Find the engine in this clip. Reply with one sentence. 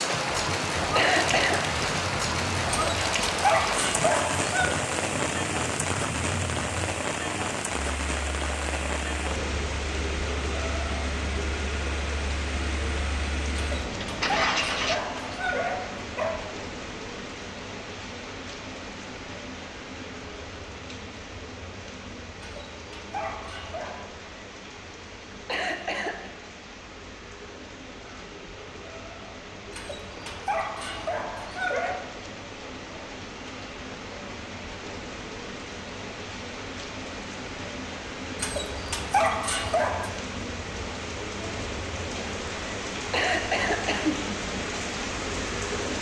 You can hear the engine from 0.0 to 15.0 s.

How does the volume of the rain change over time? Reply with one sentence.
The volume of the rain goes down, then up.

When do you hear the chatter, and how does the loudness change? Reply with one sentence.
The chatter can't be heard in this clip.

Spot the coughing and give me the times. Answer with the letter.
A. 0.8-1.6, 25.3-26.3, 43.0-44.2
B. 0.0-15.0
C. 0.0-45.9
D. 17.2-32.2
A.